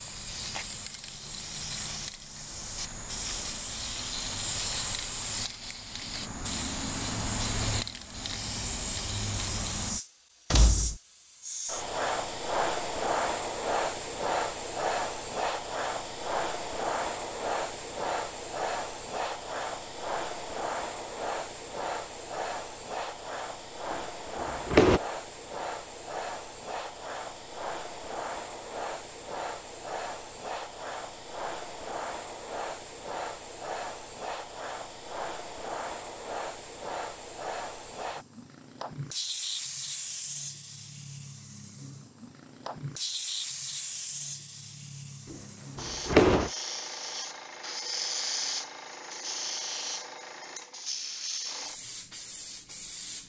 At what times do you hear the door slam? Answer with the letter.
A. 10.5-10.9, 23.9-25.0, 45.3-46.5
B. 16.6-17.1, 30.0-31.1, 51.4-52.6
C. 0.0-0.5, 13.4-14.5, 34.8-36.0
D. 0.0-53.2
A.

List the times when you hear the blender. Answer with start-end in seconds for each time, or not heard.
not heard.